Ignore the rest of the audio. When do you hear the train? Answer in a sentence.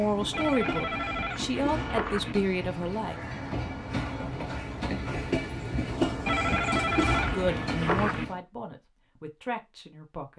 The train can be heard from 0.0 to 8.4 s.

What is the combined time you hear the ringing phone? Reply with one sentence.
You can hear the ringing phone for 4 seconds altogether.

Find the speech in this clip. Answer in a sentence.
You can hear the speech from 0.0 to 3.2 s and from 7.2 to 10.3 s.